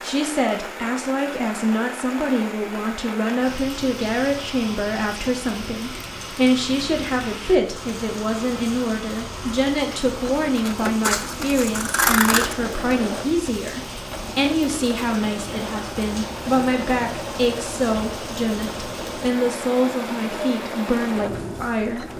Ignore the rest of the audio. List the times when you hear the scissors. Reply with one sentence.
The scissors can be heard from 11.0 to 12.6 s.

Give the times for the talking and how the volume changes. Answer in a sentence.
You can hear the talking from 0.0 to 22.1 s, at a steady volume.